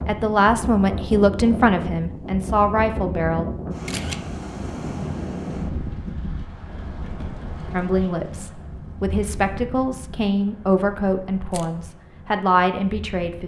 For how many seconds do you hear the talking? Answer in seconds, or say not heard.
9 s.